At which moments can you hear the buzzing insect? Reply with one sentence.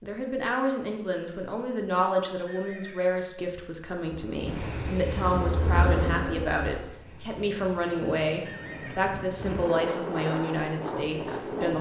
The buzzing insect can be heard from 4.0 to 7.0 s.